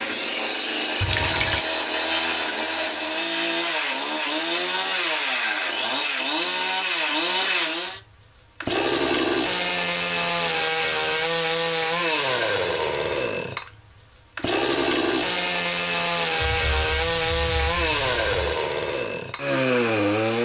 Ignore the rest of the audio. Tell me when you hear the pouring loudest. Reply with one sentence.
The loudest moment of the pouring is at 1 second.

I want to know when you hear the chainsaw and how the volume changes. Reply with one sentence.
The chainsaw can be heard from 0.0 to 20.3 s, at a steady volume.